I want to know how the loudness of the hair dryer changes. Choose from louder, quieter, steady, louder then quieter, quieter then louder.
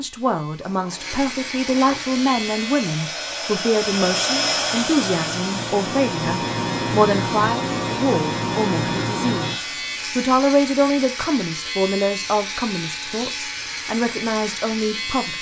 louder then quieter.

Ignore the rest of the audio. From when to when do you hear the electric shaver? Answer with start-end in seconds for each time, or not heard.
0.0-15.3.